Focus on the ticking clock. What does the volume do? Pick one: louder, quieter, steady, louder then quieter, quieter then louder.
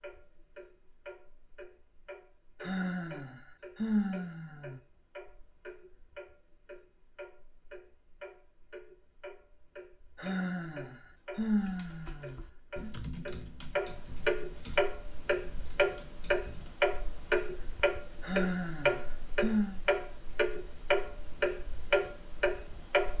louder.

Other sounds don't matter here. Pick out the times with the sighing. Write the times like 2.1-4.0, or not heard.
2.6-4.8, 10.2-12.9, 18.2-19.8.